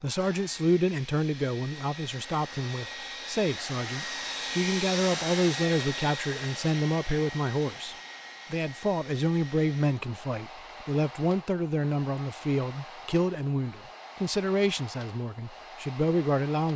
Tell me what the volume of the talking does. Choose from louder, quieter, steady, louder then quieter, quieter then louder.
steady.